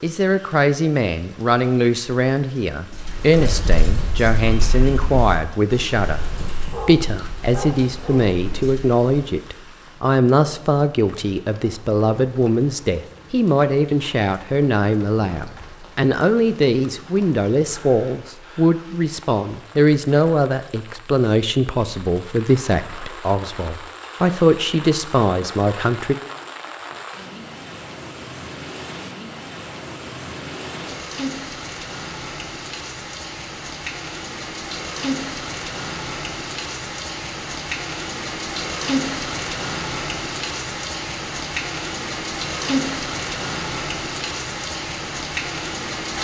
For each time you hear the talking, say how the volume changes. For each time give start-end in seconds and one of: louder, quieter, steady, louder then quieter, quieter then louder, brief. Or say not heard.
0.0-26.1 steady.